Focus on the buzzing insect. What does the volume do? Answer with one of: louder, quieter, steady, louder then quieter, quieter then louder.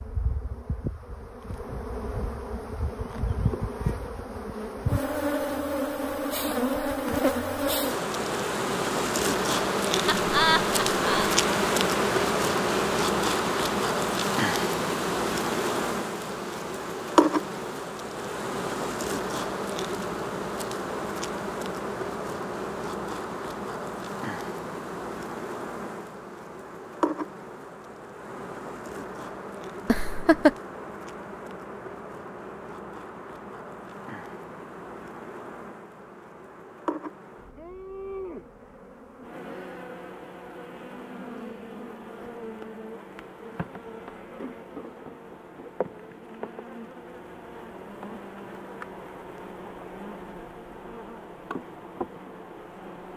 quieter.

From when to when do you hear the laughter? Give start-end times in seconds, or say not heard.
10.1-11.4, 29.9-30.6.